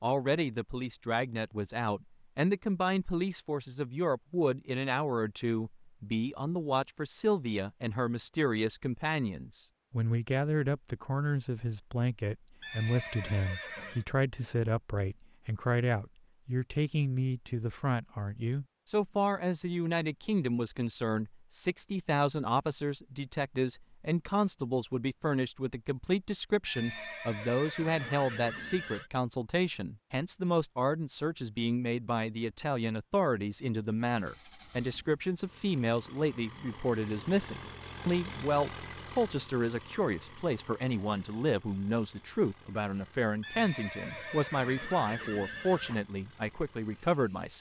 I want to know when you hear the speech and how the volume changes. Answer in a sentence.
You can hear the speech from 0.0 to 47.5 s, at a steady volume.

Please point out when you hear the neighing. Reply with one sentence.
The neighing can be heard from 12.6 to 14.1 s, from 26.6 to 29.1 s and from 43.4 to 46.0 s.